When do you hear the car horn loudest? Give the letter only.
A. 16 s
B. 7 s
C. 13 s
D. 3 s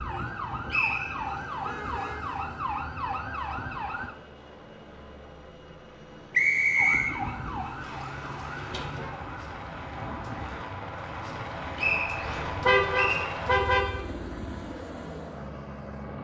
C.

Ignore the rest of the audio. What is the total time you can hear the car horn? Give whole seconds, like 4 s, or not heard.
4 s.